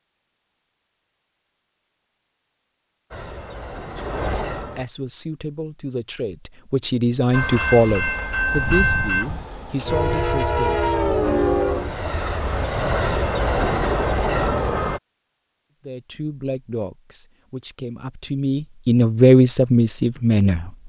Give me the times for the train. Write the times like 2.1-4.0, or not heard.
3.1-4.8, 7.3-15.0.